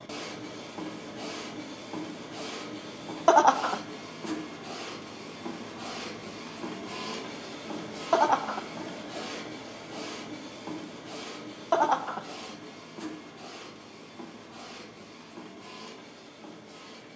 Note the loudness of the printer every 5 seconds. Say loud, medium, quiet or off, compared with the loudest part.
loud, loud, loud, medium.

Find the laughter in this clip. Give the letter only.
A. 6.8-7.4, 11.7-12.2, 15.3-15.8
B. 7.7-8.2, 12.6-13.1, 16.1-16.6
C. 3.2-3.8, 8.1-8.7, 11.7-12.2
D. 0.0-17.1
C.